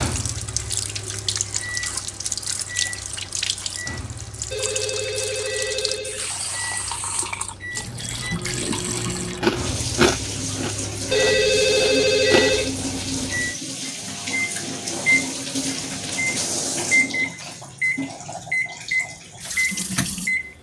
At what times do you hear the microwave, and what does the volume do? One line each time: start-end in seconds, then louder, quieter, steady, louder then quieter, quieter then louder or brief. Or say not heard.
0.0-20.5 louder.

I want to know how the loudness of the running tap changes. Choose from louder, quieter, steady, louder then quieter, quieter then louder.
steady.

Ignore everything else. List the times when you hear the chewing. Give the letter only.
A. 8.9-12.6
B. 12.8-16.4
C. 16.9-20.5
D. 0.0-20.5
A.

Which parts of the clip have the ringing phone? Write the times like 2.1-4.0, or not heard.
4.5-6.3, 11.1-12.8.